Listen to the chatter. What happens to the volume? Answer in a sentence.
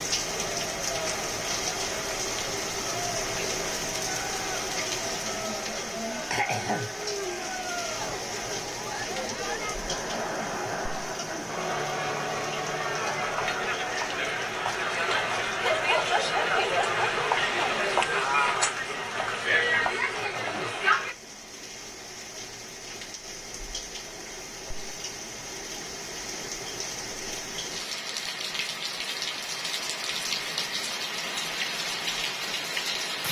The volume of the chatter goes up.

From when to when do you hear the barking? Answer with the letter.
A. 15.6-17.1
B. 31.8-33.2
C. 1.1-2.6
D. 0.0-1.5
A.